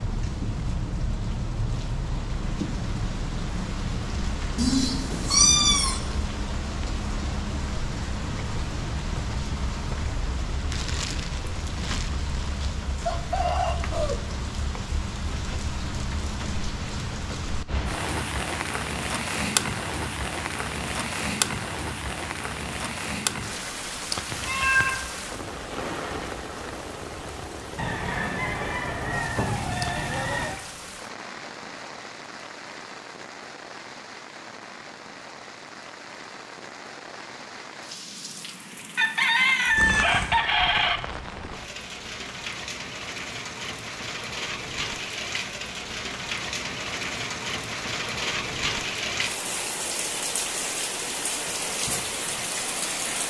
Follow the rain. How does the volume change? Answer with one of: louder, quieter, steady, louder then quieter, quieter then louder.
quieter then louder.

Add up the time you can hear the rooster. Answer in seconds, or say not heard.
6 s.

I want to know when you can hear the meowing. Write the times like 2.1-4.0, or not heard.
4.5-6.0, 24.3-25.1, 39.8-40.4.